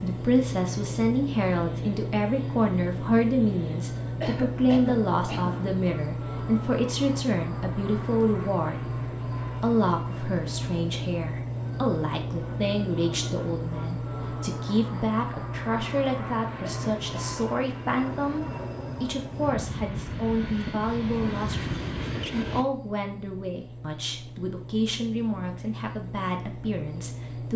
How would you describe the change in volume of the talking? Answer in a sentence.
The volume of the talking goes down.